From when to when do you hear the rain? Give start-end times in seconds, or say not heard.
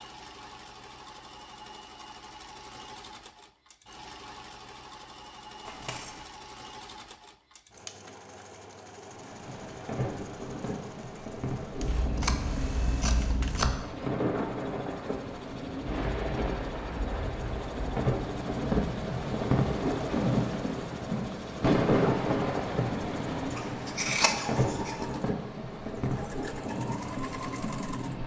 9.1-28.2.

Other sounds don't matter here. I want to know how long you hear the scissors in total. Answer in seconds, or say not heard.
4 s.